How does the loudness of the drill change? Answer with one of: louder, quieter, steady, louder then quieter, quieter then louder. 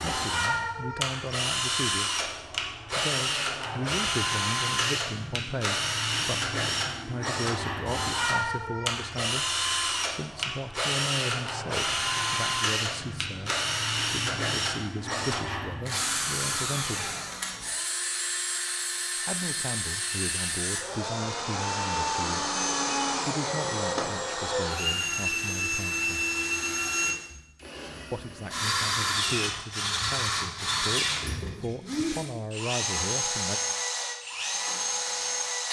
steady.